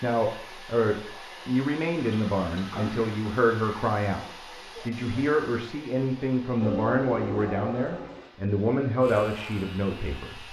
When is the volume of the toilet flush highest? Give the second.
7 s.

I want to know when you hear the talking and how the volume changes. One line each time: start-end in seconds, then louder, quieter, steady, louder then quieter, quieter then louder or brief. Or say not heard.
0.0-10.4 steady.